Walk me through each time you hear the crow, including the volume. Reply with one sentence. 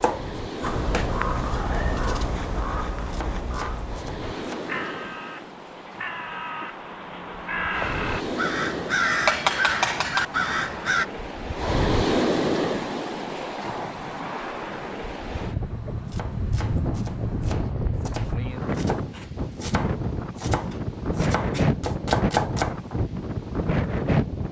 The crow can be heard from 0.6 to 11.1 s, getting quieter then louder.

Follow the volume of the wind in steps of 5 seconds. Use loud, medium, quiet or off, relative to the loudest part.
medium, medium, loud, loud, loud.